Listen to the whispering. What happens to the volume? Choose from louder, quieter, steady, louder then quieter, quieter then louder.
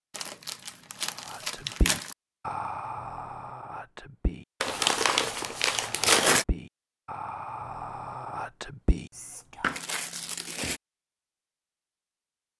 quieter then louder.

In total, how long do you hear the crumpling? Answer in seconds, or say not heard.
5 s.